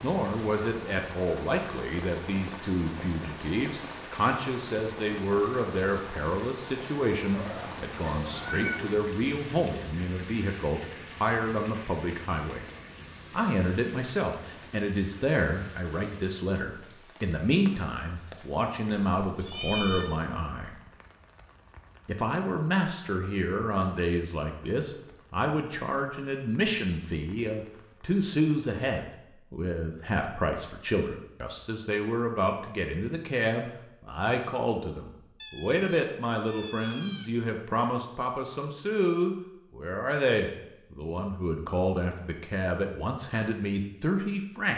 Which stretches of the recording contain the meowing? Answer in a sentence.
You can hear the meowing from 7.3 to 8.9 s, from 19.2 to 20.1 s and from 35.4 to 37.2 s.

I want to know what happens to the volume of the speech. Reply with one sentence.
The loudness of the speech stays about the same.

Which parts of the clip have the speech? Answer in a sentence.
The speech can be heard from 0.0 to 12.7 s, from 13.3 to 20.8 s and from 22.1 to 44.7 s.